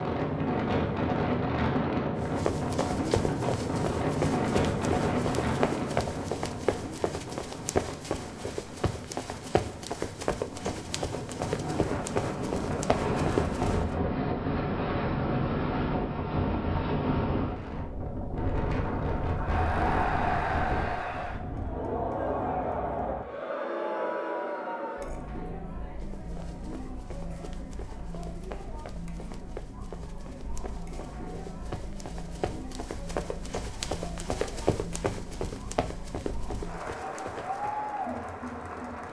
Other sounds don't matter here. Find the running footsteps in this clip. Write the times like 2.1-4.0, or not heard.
2.2-13.8, 26.0-37.8.